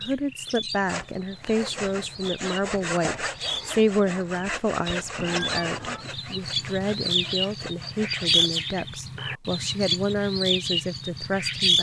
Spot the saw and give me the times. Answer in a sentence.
The saw can be heard from 0.8 to 8.7 s.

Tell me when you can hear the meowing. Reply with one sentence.
The meowing can be heard from 5.2 to 6.0 s.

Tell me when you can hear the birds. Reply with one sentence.
The birds can be heard from 0.0 to 11.7 s.